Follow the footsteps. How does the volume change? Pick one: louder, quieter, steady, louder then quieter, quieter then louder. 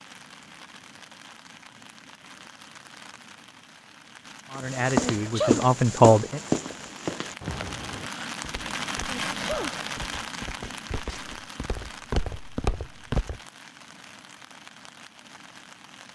quieter then louder.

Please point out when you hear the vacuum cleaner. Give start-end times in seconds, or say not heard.
not heard.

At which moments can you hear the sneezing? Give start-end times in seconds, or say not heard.
5.0-5.7, 9.1-9.8.